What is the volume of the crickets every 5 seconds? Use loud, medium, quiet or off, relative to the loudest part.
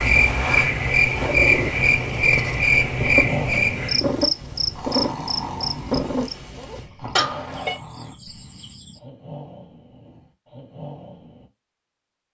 loud, quiet, off.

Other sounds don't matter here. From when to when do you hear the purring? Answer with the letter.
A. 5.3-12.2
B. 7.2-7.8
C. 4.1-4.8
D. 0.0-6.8
D.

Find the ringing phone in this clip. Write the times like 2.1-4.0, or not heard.
7.2-7.8.